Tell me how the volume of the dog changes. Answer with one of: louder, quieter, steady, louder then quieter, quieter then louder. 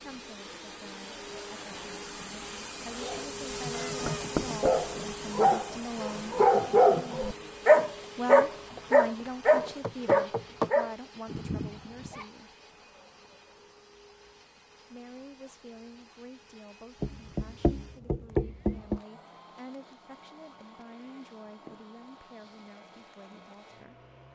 louder then quieter.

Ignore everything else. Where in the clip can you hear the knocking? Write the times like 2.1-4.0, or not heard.
4.0-4.7, 8.8-10.7, 17.0-19.0.